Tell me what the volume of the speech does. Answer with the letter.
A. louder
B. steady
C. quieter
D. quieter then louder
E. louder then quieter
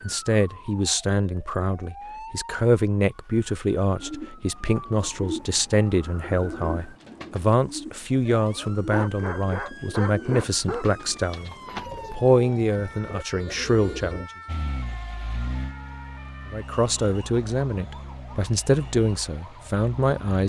B.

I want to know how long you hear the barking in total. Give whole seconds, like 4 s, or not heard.
2 s.